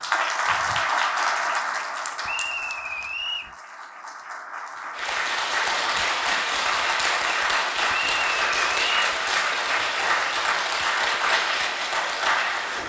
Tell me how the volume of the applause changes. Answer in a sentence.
The loudness of the applause goes down, then up.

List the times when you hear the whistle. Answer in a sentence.
The whistle can be heard from 2.2 to 3.5 s and from 7.9 to 9.2 s.